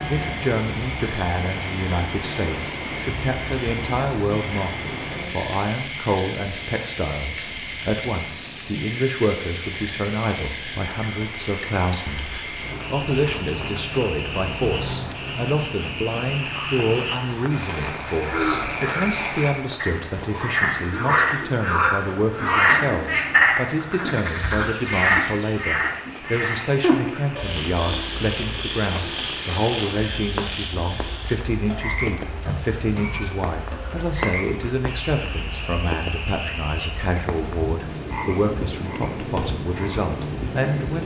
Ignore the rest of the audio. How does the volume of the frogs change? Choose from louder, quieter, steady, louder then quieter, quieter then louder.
louder then quieter.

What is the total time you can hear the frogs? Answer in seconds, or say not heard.
41 s.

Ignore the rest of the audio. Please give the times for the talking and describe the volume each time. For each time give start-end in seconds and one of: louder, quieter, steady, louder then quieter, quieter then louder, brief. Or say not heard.
0.1-41.0 steady.